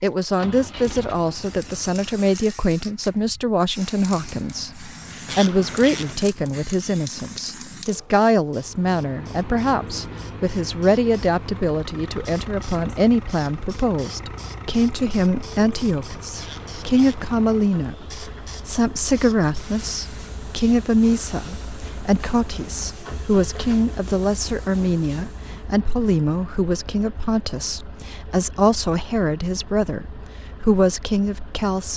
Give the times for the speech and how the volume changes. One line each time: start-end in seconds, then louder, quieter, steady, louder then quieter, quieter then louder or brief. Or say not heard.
0.0-31.9 steady.